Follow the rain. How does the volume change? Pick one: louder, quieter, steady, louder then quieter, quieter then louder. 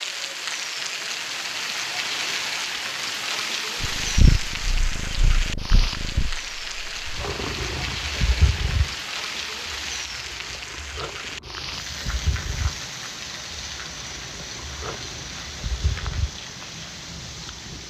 quieter.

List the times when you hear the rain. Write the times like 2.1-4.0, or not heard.
0.0-17.8.